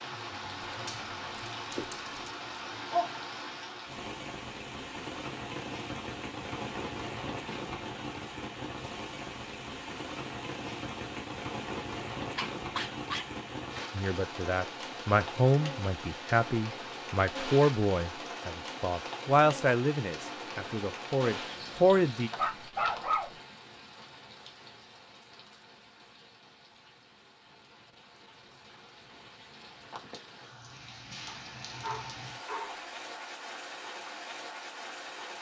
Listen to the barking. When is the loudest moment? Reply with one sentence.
The loudest moment of the barking is at 23 seconds.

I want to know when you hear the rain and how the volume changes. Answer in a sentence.
You can hear the rain from 0.0 to 35.3 s, getting quieter.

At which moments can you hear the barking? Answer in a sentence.
The barking can be heard from 0.6 to 2.3 s, from 12.3 to 13.2 s, from 22.4 to 23.4 s and from 31.2 to 32.9 s.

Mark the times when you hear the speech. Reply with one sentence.
The speech can be heard from 13.9 to 22.3 s.